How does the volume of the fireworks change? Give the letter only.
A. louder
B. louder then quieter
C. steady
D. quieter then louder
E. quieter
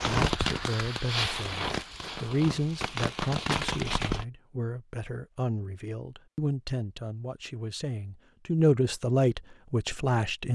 D.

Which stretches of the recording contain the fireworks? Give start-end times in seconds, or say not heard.
0.0-4.2.